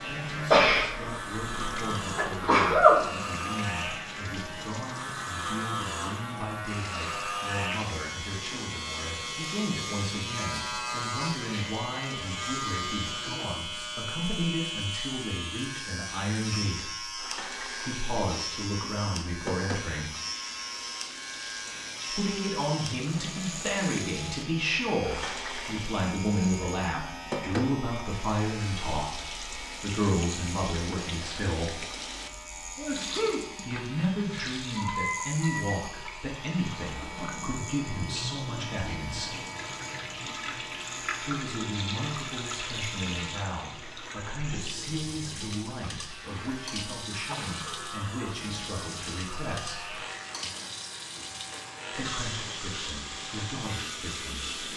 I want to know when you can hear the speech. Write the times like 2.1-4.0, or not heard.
0.0-20.1, 22.1-31.8, 33.6-39.4, 41.2-50.0, 51.9-54.5.